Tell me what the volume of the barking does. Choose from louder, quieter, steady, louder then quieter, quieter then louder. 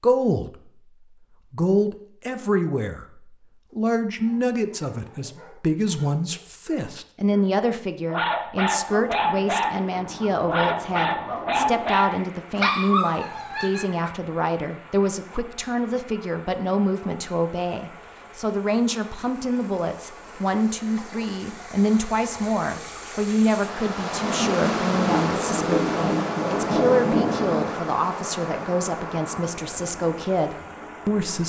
louder.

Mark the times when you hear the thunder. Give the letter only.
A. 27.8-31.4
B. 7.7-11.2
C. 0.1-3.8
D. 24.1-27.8
D.